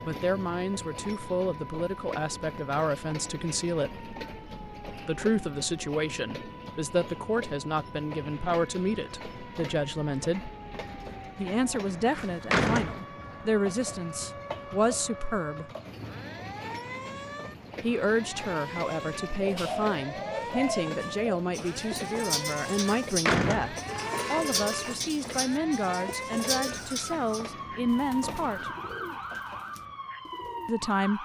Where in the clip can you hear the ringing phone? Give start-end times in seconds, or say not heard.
23.9-25.1.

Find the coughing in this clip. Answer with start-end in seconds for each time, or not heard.
not heard.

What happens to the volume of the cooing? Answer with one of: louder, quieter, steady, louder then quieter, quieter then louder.
quieter.